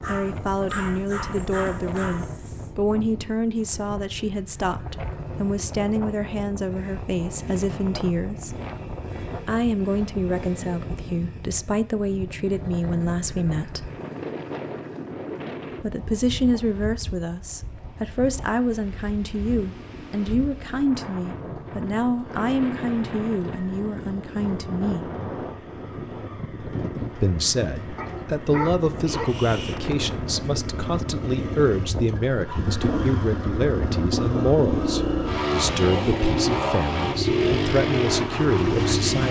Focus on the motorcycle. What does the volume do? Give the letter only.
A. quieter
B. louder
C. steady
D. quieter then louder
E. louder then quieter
B.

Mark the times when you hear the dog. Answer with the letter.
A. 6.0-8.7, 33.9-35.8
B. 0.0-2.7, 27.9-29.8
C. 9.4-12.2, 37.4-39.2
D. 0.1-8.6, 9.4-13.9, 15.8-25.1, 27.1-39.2
B.